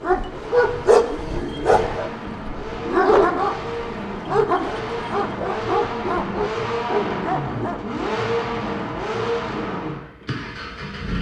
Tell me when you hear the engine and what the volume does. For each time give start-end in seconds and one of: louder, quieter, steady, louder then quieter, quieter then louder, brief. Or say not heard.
0.0-11.1 louder.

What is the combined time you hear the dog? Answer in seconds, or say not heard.
8 s.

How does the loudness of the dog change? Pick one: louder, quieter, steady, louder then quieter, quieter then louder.
quieter.